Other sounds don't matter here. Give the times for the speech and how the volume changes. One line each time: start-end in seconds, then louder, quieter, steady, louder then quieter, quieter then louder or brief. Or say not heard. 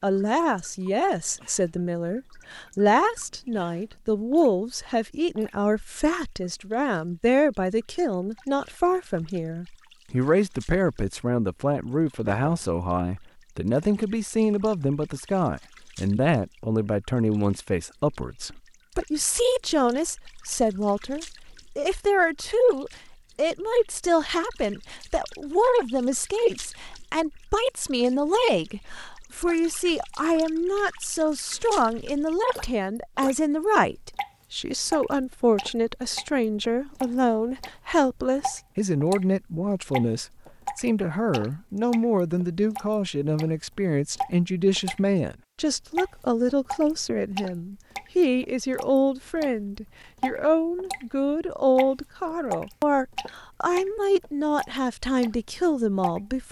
0.0-56.4 steady.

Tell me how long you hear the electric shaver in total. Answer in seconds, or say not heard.
not heard.